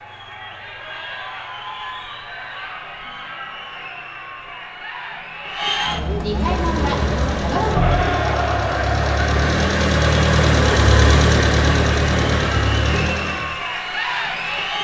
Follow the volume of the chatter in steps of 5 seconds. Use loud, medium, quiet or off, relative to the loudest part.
medium, loud, loud.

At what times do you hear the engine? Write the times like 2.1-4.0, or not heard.
6.2-13.6.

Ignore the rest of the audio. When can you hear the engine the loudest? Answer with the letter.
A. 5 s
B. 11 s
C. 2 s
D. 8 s
B.